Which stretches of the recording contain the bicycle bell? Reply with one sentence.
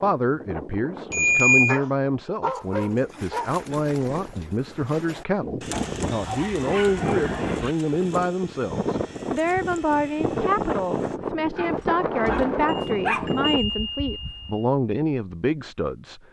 You can hear the bicycle bell from 1.1 to 1.8 s and from 12.7 to 14.7 s.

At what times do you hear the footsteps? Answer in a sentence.
You can't hear the footsteps here.